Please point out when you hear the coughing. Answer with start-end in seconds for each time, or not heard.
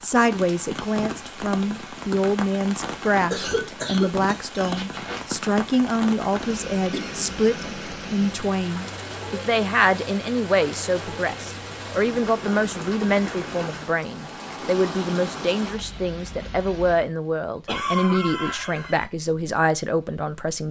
3.3-5.2, 6.9-7.9, 17.6-19.1.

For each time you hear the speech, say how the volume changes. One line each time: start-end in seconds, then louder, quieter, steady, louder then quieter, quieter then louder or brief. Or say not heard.
0.0-20.6 steady.